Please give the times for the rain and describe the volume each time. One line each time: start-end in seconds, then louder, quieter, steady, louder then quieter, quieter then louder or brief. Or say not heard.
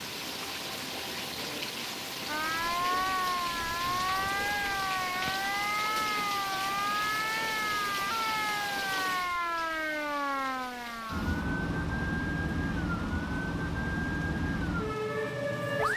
0.0-15.9 quieter.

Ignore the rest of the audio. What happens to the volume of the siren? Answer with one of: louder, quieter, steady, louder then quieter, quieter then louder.
steady.